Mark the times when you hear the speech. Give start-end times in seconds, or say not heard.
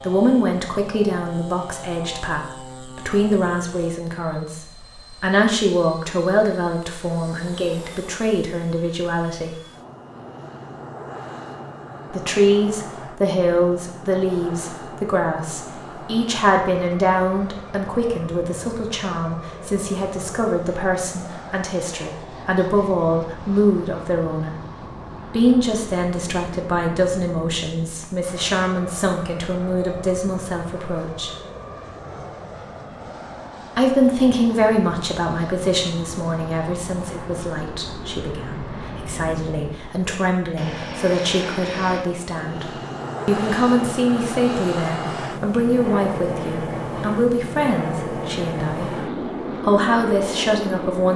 0.0-9.6, 12.1-24.6, 25.2-31.3, 33.8-48.9, 49.6-51.1.